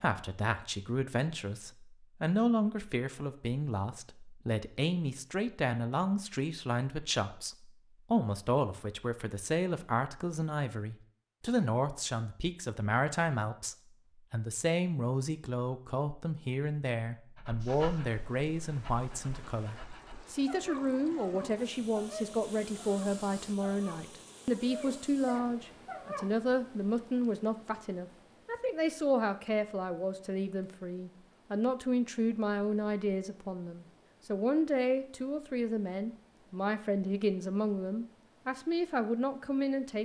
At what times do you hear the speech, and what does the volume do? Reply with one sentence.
The speech can be heard from 0.0 to 40.0 s, at a steady volume.